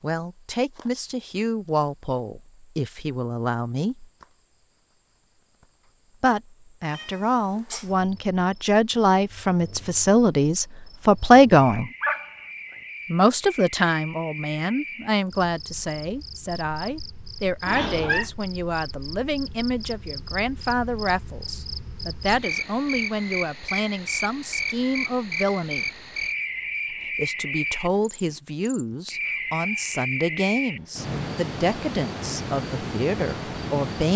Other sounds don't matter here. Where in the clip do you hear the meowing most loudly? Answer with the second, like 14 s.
18 s.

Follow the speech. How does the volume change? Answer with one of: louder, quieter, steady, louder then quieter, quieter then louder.
louder then quieter.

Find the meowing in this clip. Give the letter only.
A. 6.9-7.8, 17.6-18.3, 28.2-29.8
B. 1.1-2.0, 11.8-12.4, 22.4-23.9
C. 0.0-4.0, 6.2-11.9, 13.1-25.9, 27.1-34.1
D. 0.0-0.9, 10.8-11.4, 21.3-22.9
A.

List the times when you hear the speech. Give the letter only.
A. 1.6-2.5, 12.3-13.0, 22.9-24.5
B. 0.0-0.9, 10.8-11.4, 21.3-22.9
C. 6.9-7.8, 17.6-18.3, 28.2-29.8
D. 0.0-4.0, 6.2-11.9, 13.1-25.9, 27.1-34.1
D.